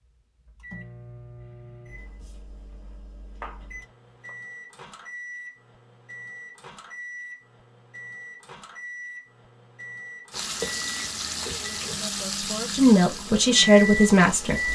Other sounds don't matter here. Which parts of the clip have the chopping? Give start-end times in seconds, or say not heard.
2.0-4.3, 10.6-12.2.